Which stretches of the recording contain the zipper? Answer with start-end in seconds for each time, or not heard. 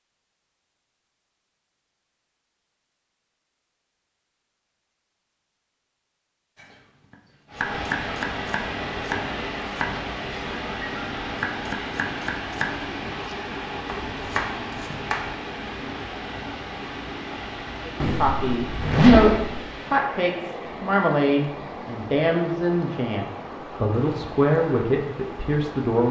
18.0-19.6.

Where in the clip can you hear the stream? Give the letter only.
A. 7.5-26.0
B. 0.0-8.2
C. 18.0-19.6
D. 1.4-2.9
A.